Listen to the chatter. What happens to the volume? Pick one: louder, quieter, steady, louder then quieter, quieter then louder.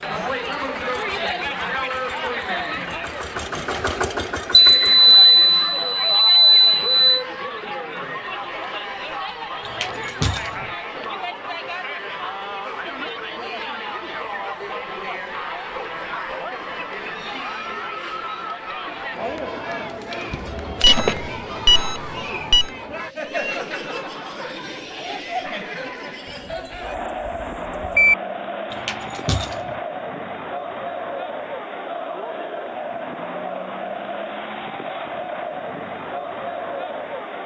steady.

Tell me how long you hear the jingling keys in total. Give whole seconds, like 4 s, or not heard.
3 s.